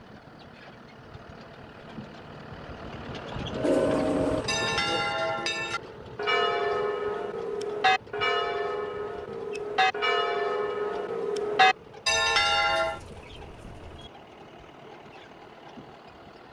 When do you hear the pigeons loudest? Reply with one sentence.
The volume of the pigeons peaks at 4 seconds.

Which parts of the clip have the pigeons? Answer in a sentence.
You can hear the pigeons from 3.6 to 5.2 s and from 12.1 to 14.1 s.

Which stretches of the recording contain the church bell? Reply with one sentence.
You can hear the church bell from 3.5 to 13.0 s.